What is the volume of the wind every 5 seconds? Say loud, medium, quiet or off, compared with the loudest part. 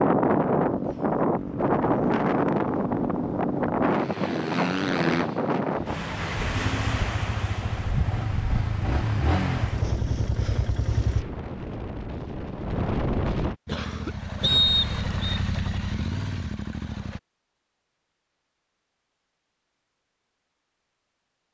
loud, medium, medium, off, off.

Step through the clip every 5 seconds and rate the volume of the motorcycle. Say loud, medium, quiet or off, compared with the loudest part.
loud, loud, loud, loud, off.